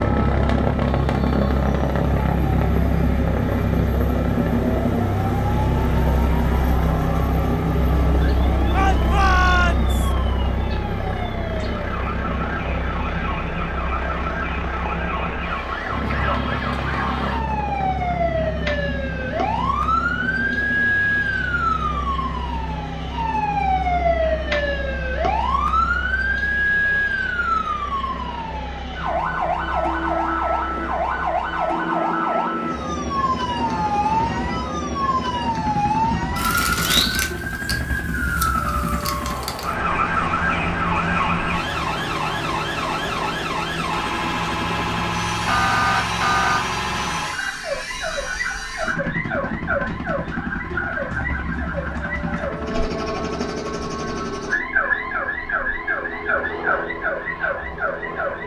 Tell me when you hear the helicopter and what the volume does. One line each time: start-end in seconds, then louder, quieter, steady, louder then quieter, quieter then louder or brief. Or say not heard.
0.0-58.4 quieter.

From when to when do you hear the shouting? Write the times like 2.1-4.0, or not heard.
8.7-10.1.